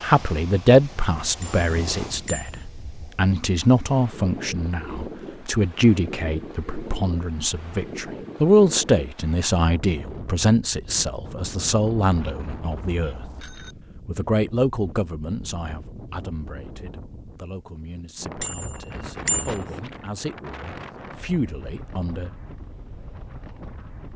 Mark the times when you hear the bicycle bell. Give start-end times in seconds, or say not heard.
1.4-2.6, 11.8-13.8, 18.4-19.6.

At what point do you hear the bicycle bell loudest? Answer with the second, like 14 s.
19 s.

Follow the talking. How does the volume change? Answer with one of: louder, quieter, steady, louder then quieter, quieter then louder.
quieter.